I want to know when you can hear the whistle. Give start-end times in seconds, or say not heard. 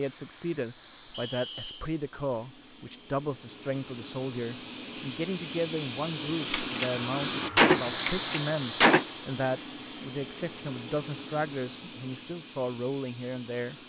1.1-1.9.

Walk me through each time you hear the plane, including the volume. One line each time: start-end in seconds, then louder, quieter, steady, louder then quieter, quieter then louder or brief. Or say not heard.
0.0-13.8 louder then quieter.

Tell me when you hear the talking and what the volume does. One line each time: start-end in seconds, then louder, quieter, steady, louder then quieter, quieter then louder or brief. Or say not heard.
0.0-13.8 steady.